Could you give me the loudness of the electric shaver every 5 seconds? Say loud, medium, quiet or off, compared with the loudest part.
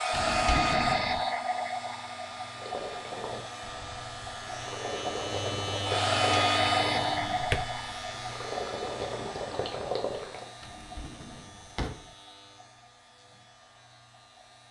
medium, loud, quiet.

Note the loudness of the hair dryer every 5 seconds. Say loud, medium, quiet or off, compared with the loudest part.
loud, loud, quiet.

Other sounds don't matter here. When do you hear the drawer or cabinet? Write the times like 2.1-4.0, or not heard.
0.1-1.2, 6.6-7.8, 10.6-12.1.